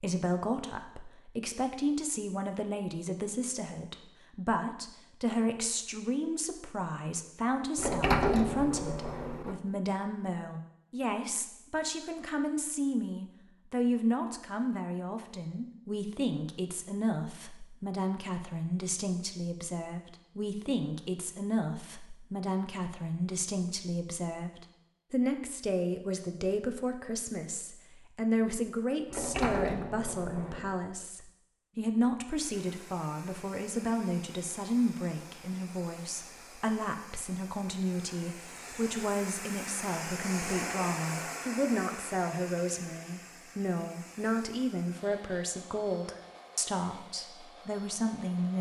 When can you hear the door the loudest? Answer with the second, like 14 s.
8 s.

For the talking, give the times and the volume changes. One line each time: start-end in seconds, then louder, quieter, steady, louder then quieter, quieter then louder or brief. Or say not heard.
0.0-48.5 steady.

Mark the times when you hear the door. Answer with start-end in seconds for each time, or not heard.
7.8-9.6, 29.1-30.8.